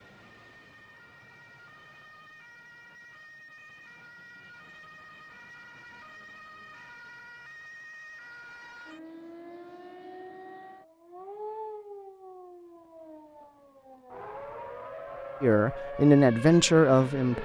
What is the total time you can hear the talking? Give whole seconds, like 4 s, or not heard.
2 s.